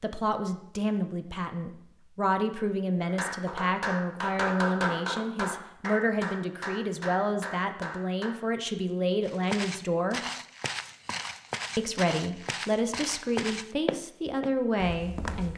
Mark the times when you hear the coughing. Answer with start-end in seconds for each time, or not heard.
not heard.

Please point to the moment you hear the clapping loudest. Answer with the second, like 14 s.
5 s.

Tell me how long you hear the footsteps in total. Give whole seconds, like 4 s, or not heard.
6 s.